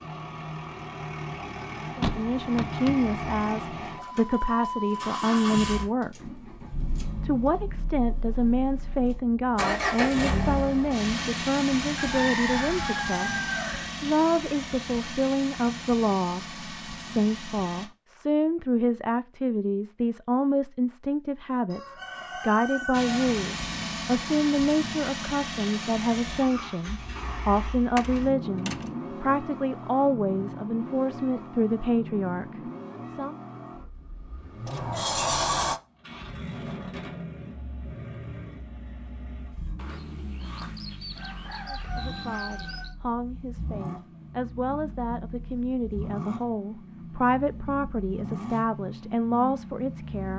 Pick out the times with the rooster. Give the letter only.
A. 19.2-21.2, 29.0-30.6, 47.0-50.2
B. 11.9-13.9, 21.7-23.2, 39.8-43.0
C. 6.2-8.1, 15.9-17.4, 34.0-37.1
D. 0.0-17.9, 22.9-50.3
B.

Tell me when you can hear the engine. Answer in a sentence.
You can hear the engine from 0.0 to 17.9 s and from 22.9 to 50.3 s.